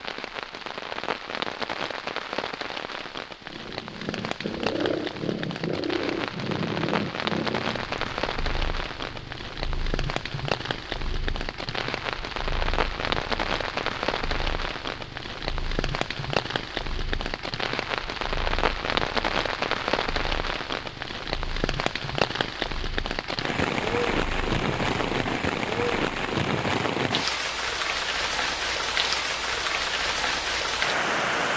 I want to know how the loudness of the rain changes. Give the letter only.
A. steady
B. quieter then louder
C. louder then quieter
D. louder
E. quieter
D.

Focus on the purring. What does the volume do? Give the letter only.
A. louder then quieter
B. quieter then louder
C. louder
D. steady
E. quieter
E.